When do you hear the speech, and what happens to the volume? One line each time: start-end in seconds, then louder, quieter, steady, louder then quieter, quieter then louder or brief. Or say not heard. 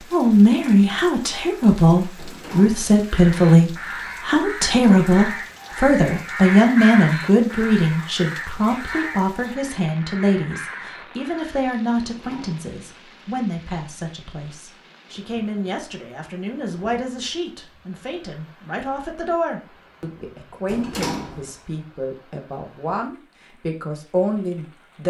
0.0-25.0 quieter.